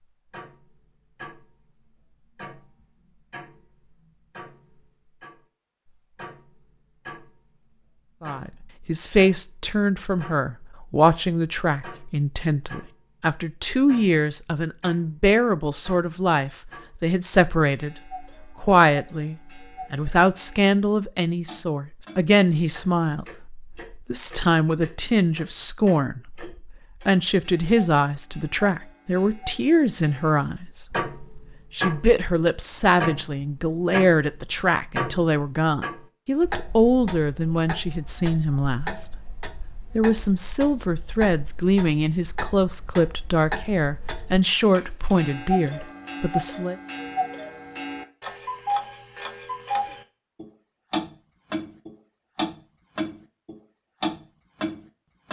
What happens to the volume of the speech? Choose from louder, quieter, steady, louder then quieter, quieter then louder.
steady.